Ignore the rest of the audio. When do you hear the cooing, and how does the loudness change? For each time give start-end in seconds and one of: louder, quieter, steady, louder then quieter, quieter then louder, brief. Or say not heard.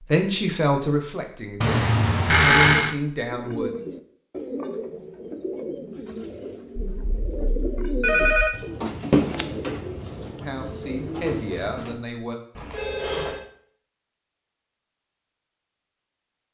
3.2-12.0 louder then quieter.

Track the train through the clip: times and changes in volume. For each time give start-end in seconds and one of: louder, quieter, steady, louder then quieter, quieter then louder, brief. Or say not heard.
not heard.